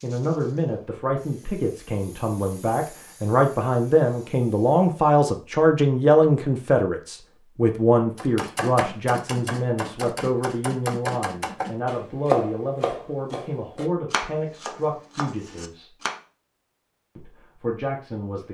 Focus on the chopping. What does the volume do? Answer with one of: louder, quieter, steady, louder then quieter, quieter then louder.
louder then quieter.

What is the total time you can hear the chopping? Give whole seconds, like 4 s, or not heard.
8 s.